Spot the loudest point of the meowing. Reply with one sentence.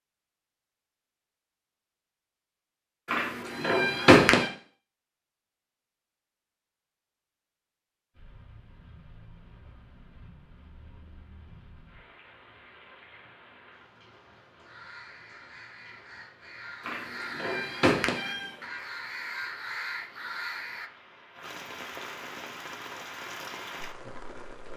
The volume of the meowing peaks at 4 seconds.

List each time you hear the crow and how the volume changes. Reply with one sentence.
The crow can be heard from 14.6 to 20.9 s, getting louder.